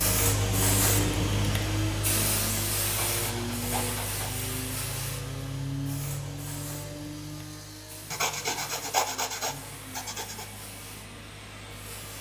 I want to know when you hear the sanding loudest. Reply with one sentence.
The volume of the sanding peaks at 9 seconds.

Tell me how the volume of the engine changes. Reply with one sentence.
The volume of the engine goes down.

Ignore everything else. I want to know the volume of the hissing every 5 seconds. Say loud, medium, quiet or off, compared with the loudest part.
loud, quiet, quiet.